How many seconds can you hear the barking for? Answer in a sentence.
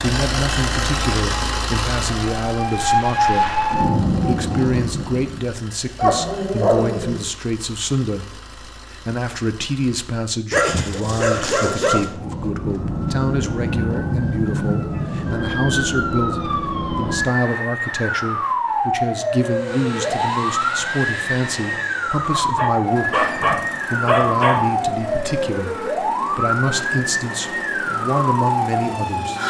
You can hear the barking for 5 seconds altogether.